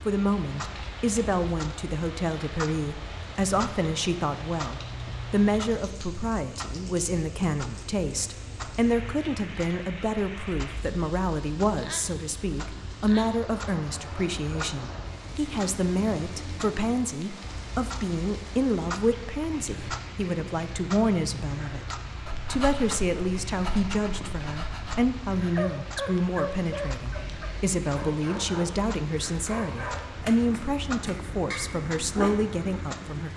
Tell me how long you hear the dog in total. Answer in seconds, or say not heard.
10 s.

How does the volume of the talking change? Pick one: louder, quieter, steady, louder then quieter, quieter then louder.
steady.